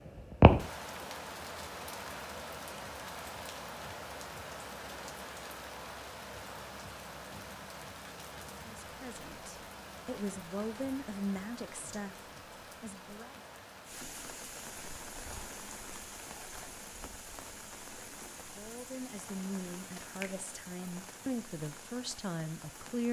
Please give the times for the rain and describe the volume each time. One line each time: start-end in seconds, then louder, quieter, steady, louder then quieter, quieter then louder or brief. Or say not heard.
0.0-23.0 quieter.